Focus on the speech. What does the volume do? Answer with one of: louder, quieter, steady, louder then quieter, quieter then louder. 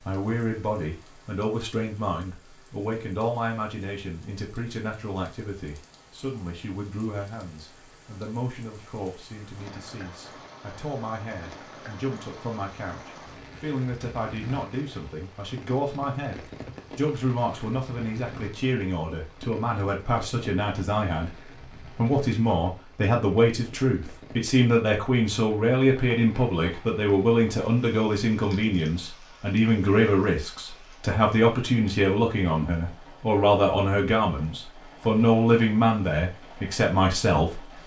louder.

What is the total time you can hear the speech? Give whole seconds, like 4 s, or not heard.
38 s.